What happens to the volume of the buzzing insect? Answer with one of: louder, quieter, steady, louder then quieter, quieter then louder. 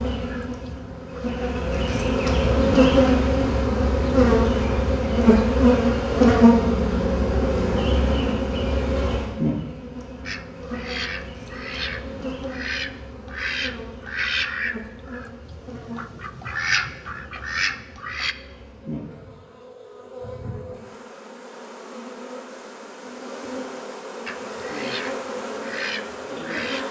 quieter then louder.